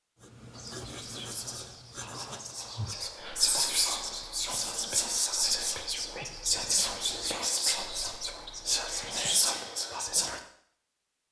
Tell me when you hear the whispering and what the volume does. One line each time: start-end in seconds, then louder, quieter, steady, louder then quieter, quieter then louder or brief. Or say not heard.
0.5-10.4 louder.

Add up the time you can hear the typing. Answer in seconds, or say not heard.
not heard.